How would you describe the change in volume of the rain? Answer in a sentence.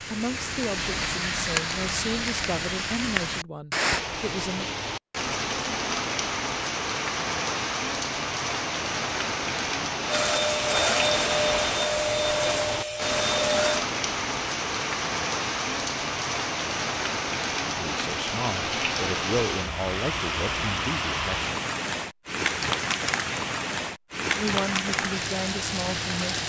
The loudness of the rain stays about the same.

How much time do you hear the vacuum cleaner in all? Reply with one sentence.
The vacuum cleaner can be heard for 4 seconds in total.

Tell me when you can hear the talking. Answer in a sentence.
You can hear the talking from 0.1 to 4.7 s, from 17.8 to 21.6 s and from 24.4 to 26.4 s.